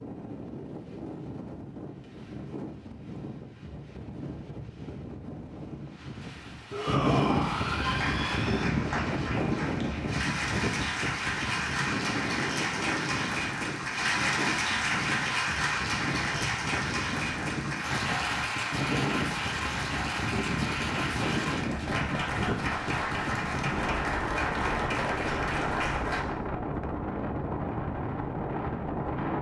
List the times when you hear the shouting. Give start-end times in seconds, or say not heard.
6.7-8.7.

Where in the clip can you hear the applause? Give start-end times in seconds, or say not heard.
7.8-26.2.